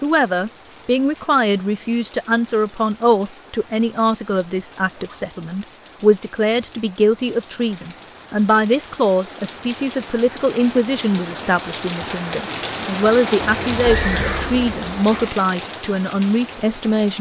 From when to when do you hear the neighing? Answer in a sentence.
You can hear the neighing from 13.4 to 15.3 s.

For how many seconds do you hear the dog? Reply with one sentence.
You can't hear the dog here.